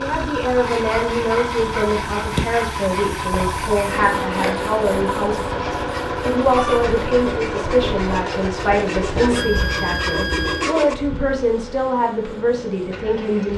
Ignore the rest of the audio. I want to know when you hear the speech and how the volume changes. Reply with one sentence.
The speech can be heard from 0.0 to 13.5 s, at a steady volume.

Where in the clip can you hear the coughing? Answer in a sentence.
You can't hear the coughing here.